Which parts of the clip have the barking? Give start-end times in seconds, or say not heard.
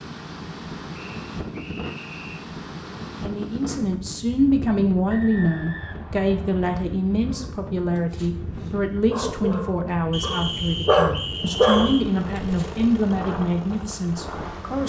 7.2-12.7.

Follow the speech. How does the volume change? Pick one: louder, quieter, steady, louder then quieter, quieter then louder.
steady.